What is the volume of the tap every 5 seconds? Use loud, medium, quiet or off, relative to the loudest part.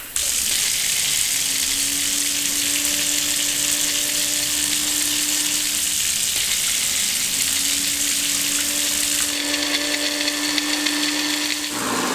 loud, loud, medium.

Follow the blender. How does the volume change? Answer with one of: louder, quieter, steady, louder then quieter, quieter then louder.
louder.